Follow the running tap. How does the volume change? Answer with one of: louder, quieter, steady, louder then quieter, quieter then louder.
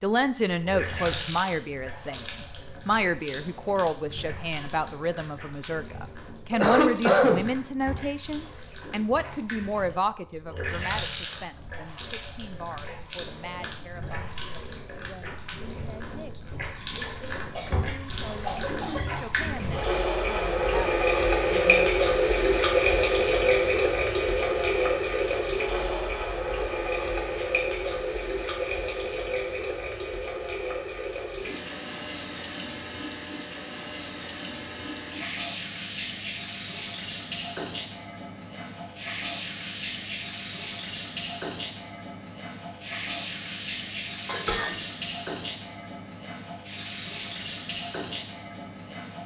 louder then quieter.